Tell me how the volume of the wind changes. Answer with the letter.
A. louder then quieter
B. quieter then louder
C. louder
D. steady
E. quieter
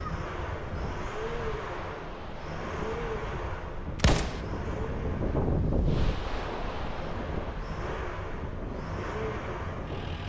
A.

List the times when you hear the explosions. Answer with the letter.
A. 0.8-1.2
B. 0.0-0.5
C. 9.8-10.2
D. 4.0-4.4
D.